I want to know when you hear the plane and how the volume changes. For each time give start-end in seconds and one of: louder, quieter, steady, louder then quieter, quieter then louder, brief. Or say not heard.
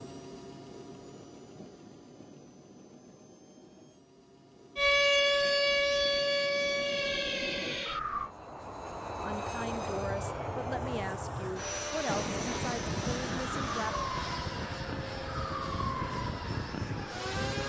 0.0-17.6 louder.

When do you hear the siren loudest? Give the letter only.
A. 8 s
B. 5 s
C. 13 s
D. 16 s
B.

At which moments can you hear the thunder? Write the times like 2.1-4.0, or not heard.
12.1-14.1.